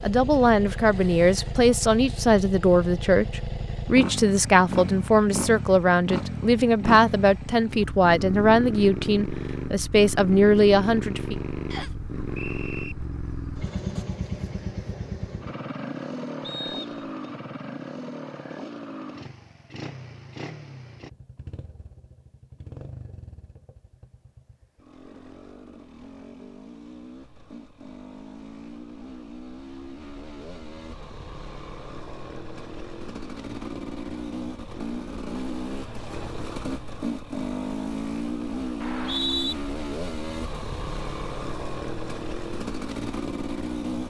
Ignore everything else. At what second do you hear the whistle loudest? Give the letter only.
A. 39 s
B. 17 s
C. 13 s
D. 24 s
A.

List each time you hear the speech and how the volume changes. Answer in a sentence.
You can hear the speech from 0.0 to 11.4 s, at a steady volume.